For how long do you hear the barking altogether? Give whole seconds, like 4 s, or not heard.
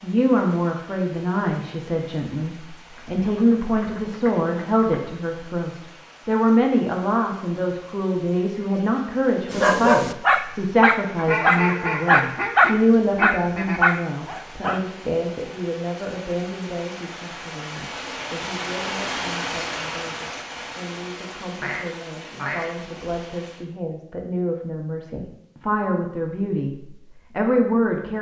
5 s.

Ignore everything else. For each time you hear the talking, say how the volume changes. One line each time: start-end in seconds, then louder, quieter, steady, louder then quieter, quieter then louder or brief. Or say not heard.
0.0-28.1 quieter then louder.